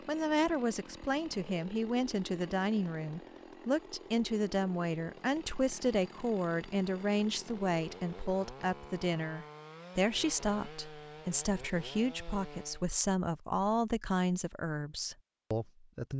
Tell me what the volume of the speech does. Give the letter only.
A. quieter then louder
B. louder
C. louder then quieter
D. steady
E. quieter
D.